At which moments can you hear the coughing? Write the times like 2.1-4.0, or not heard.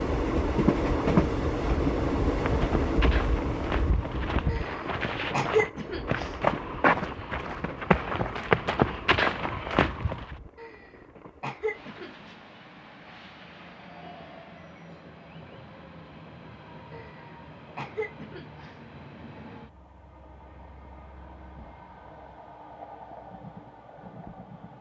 4.5-6.3, 10.6-12.3, 16.9-18.8.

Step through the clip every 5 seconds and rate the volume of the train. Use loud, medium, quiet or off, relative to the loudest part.
loud, quiet, quiet, quiet, quiet.